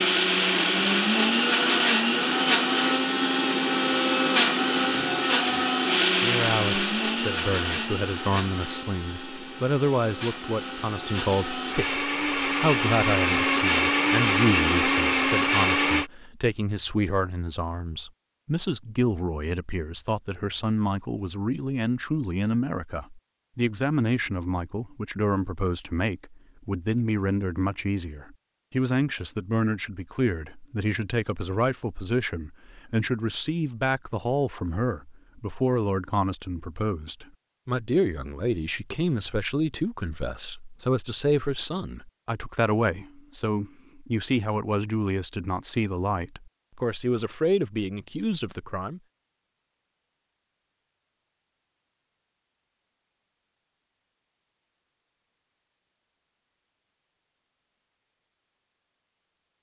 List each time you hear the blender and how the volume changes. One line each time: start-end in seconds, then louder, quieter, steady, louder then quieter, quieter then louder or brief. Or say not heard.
0.0-16.1 quieter then louder.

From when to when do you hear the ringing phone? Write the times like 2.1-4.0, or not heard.
not heard.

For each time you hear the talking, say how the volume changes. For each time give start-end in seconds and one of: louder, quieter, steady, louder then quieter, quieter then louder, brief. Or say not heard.
6.2-49.0 steady.